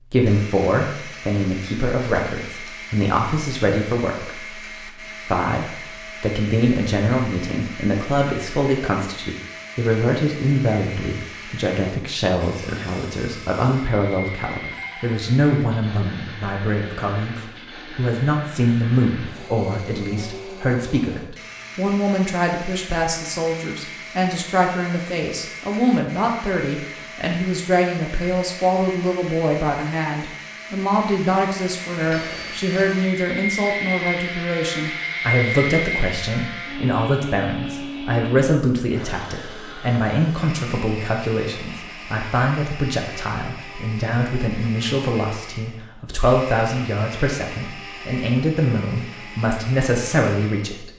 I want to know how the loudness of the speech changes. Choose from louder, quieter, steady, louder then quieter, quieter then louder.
steady.